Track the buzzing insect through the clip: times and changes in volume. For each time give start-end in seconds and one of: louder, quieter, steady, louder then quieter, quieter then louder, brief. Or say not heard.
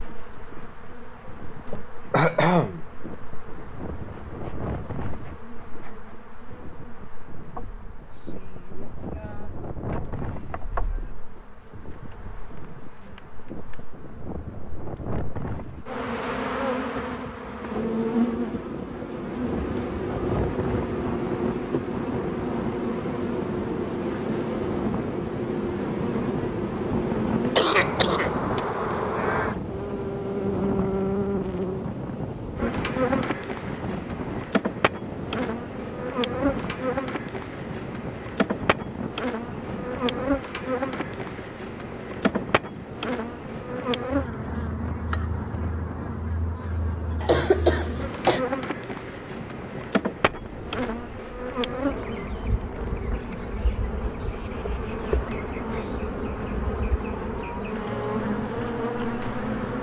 0.0-59.7 louder.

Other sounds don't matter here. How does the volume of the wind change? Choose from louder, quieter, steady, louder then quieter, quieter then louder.
louder then quieter.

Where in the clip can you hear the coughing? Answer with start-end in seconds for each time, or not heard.
1.7-2.9, 27.6-28.6, 47.2-48.4.